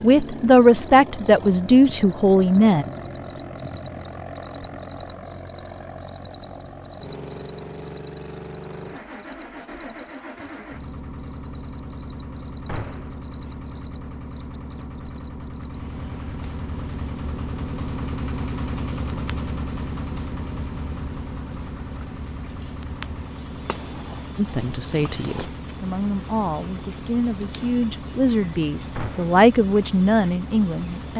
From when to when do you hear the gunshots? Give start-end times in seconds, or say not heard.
12.7-13.2, 28.9-29.4.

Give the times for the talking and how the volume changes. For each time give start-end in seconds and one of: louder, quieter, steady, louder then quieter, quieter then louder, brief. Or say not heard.
0.0-2.9 brief
24.4-31.1 louder.